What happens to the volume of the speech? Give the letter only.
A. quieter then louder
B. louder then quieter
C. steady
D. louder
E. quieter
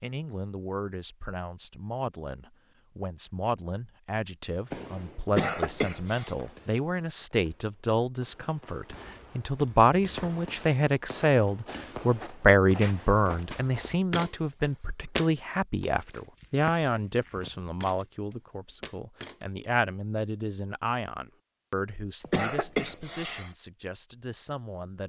B.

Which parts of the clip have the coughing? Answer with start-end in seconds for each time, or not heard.
5.2-6.3, 22.2-23.6.